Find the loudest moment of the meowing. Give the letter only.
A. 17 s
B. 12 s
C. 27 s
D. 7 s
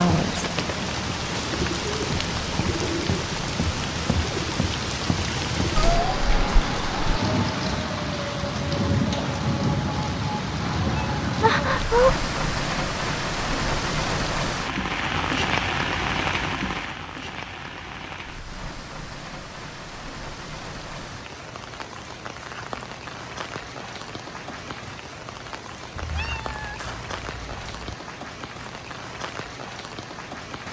B.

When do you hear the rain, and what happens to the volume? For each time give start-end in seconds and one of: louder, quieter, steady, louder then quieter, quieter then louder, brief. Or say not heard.
0.0-30.6 quieter.